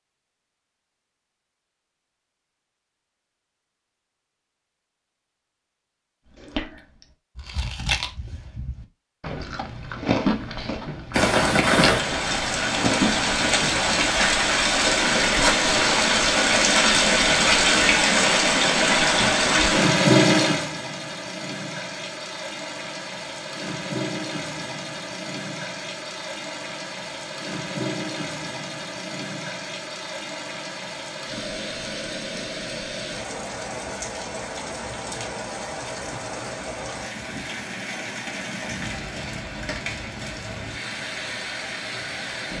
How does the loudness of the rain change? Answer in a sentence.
The loudness of the rain goes down.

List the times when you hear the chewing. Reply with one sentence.
You can hear the chewing from 6.4 to 14.2 s.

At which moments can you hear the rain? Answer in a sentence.
The rain can be heard from 11.1 to 42.5 s.